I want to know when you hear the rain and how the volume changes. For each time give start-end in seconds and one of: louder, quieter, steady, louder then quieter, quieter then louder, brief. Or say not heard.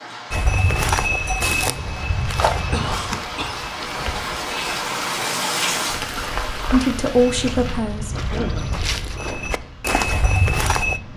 0.0-11.1 louder then quieter.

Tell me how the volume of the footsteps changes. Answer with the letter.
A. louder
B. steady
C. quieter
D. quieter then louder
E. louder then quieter
D.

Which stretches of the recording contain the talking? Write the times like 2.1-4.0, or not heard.
6.7-8.2.